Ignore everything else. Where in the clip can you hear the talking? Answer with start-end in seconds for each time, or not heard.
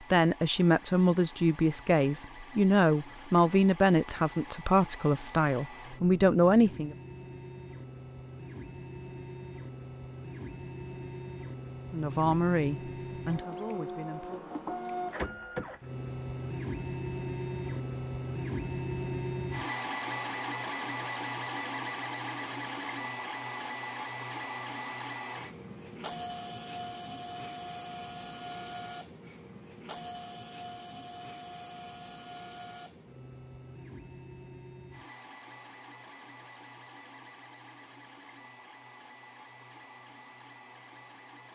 0.1-7.0, 11.9-14.4.